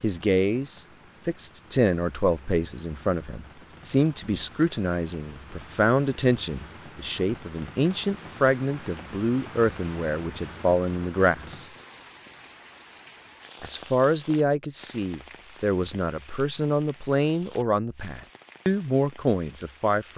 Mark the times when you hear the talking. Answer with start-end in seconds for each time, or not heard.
0.0-11.7, 13.6-20.1.